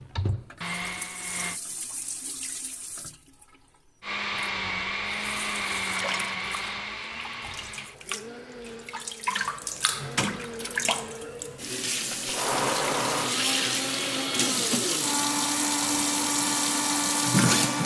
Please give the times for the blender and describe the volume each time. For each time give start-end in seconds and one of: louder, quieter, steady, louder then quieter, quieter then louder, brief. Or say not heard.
0.0-1.6 brief
4.0-17.8 quieter then louder.